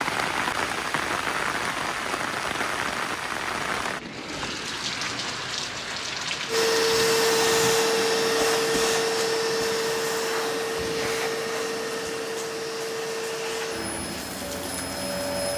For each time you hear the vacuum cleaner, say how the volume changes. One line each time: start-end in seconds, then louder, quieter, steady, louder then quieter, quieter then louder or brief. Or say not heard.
6.5-15.5 quieter.